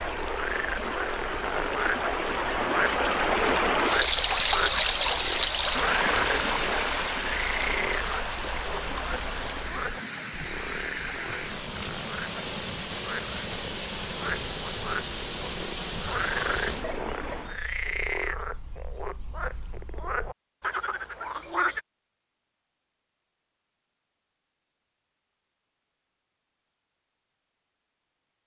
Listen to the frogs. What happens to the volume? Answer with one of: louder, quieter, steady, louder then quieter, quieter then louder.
quieter then louder.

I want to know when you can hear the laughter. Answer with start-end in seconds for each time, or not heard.
not heard.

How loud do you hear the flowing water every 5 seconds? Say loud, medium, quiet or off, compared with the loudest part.
loud, loud, medium, medium, off, off.